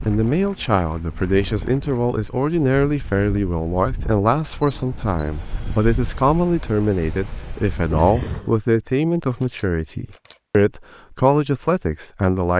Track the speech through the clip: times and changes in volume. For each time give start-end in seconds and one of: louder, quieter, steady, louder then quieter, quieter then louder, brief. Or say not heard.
0.1-12.5 steady.